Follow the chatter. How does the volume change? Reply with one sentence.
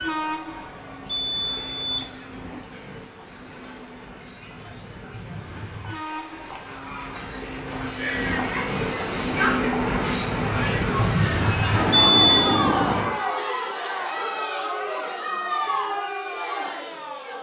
The volume of the chatter goes up.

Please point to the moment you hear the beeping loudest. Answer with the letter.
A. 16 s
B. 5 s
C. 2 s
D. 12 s
D.